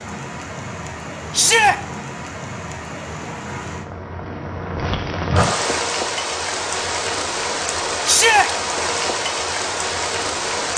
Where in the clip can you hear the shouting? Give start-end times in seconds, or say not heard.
1.3-1.8, 8.1-8.5.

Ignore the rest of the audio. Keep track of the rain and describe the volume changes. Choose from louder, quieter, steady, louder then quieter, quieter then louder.
louder.